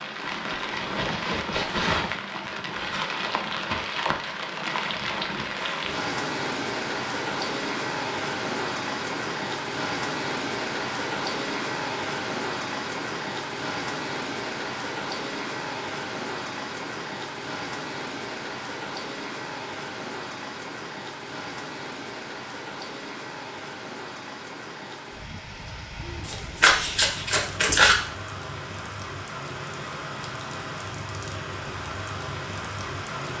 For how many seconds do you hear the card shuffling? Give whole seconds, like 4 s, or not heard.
2 s.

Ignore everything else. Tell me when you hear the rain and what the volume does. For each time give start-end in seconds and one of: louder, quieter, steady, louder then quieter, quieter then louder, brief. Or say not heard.
0.0-33.3 quieter.